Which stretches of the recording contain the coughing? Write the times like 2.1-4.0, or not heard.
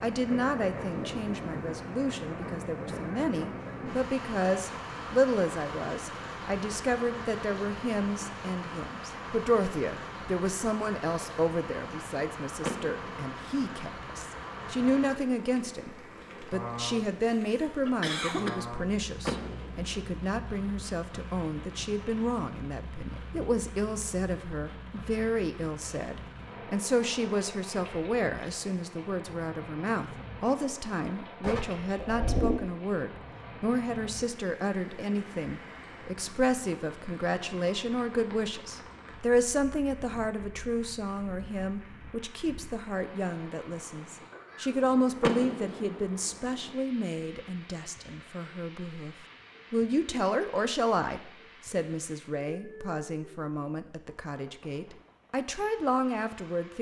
17.2-18.5, 31.4-32.6.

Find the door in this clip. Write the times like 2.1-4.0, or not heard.
12.6-13.2, 19.2-20.0, 45.2-46.0.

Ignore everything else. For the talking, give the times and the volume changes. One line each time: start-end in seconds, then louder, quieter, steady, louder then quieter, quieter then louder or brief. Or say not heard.
0.0-56.7 steady.